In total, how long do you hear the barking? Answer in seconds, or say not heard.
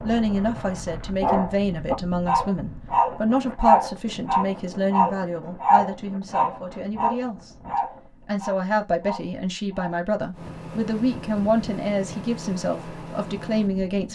9 s.